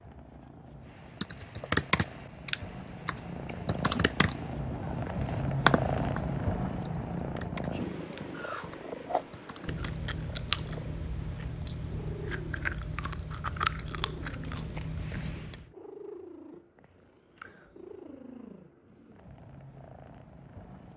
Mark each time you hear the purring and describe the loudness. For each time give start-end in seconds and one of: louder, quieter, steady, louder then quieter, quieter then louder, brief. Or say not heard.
0.0-20.9 louder then quieter.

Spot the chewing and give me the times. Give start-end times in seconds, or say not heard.
8.3-15.7.